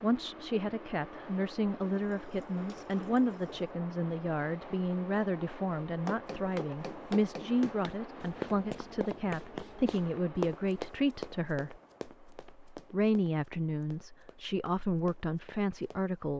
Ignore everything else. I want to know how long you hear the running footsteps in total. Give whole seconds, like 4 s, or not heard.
10 s.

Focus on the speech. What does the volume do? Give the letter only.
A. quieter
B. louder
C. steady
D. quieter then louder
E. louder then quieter
C.